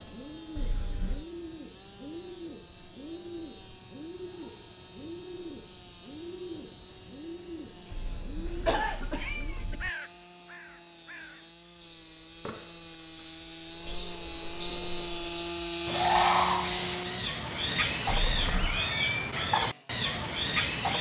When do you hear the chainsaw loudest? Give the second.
16 s.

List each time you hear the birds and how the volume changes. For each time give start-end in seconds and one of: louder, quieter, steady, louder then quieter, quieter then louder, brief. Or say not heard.
0.0-20.9 louder.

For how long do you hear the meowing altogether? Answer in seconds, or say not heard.
3 s.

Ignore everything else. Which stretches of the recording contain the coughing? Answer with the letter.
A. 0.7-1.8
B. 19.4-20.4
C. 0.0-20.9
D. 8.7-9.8
D.